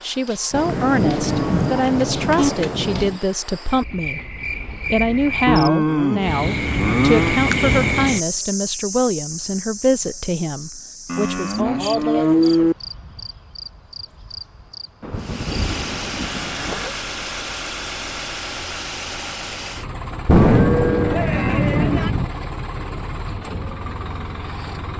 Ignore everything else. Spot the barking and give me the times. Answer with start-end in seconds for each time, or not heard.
not heard.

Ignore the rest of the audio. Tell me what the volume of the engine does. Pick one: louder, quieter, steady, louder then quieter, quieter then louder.
steady.